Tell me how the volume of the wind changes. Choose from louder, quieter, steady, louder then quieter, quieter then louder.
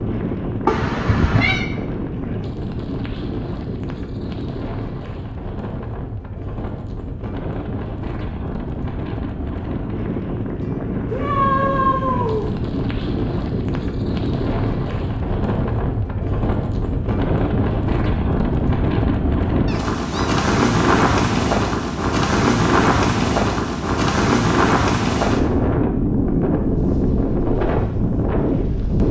louder.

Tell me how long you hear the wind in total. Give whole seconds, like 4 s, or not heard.
29 s.